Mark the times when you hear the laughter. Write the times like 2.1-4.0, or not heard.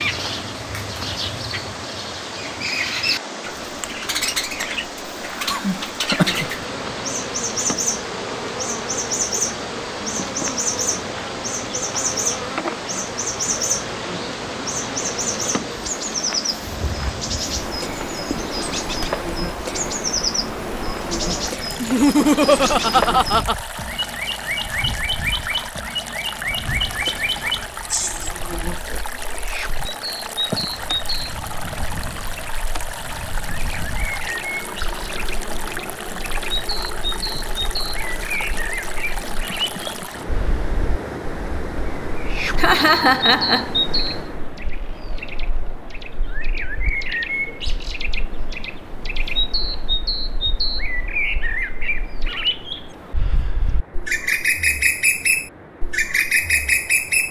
5.5-6.8, 21.8-23.6, 42.5-43.7.